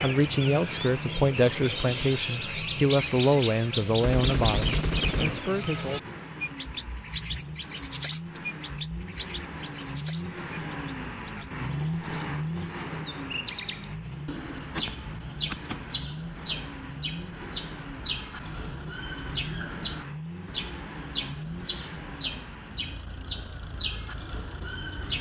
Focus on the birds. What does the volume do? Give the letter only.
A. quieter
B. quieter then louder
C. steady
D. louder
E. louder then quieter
B.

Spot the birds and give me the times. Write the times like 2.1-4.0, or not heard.
0.0-25.1.